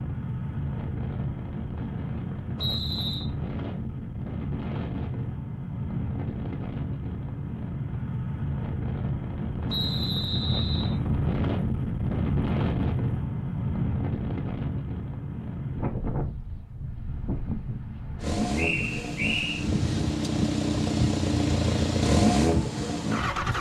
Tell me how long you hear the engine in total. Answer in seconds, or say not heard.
5 s.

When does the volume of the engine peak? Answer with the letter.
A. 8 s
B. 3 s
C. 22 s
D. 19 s
C.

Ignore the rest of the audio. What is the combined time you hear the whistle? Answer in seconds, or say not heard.
3 s.